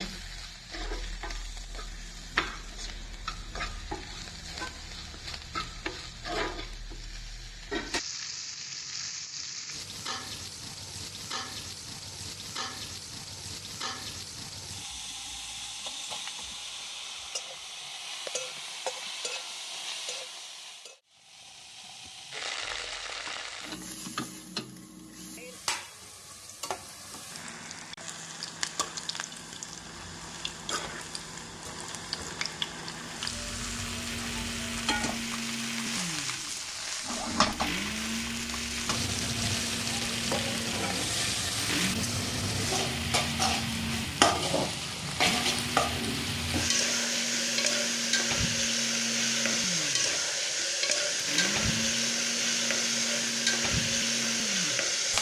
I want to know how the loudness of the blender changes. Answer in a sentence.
The loudness of the blender stays about the same.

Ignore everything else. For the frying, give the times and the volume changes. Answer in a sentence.
The frying can be heard from 0.0 to 55.1 s, getting louder.